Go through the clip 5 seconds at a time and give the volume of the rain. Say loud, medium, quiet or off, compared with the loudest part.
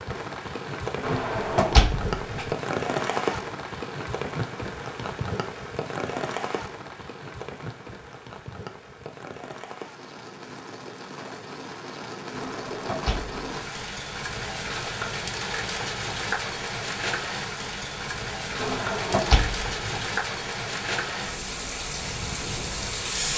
loud, medium, medium, loud, loud.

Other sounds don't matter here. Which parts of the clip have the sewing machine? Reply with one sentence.
You can't hear the sewing machine here.